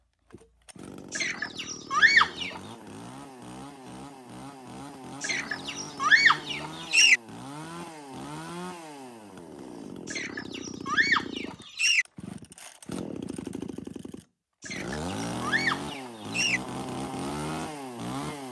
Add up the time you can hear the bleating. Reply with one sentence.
The bleating can't be heard in this clip.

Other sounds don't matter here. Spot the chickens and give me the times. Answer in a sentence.
The chickens can be heard from 1.1 to 2.6 s, from 5.2 to 7.2 s, from 10.1 to 12.1 s and from 14.6 to 16.6 s.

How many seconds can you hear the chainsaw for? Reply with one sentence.
You can hear the chainsaw for 18 seconds altogether.